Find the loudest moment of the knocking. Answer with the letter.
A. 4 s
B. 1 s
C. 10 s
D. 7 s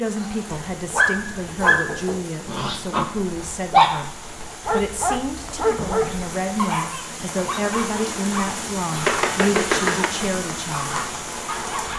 C.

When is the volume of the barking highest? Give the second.
4 s.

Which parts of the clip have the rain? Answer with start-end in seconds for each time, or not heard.
0.0-11.9.